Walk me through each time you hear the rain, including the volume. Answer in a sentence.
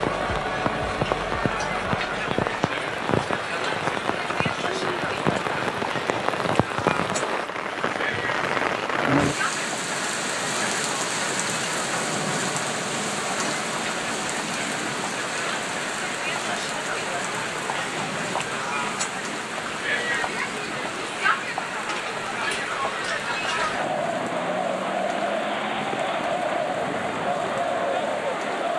You can hear the rain from 0.0 to 28.7 s, getting quieter.